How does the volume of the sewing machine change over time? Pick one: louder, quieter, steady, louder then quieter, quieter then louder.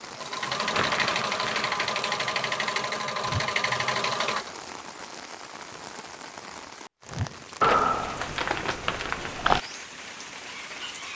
steady.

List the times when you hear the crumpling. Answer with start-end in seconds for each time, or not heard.
0.7-1.8, 7.6-9.7.